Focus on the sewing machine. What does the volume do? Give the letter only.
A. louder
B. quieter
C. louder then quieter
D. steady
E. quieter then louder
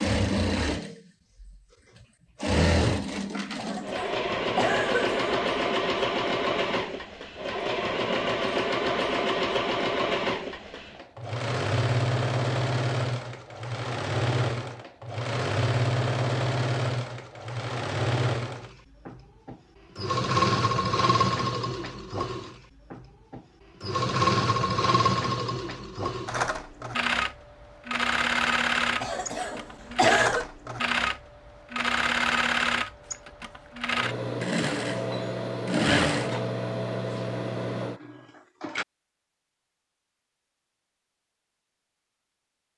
D.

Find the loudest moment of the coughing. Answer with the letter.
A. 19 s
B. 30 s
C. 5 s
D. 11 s
B.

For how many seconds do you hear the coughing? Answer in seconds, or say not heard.
3 s.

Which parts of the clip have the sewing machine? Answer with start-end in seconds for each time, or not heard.
0.0-38.9.